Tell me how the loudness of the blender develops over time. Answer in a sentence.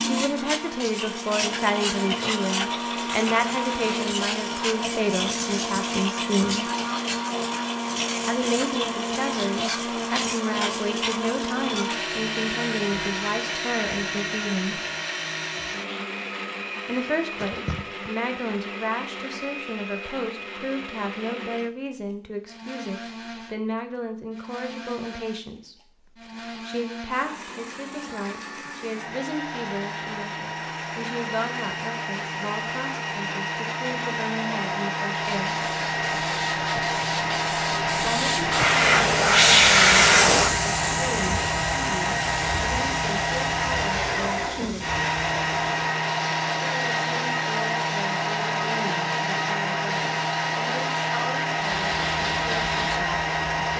The volume of the blender goes down, then up.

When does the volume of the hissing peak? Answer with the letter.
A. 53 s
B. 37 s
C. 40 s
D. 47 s
C.